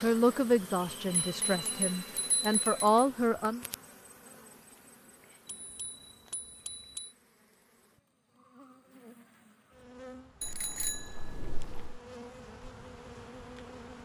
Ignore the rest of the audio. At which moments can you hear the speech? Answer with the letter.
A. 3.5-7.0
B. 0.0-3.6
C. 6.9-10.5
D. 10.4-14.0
B.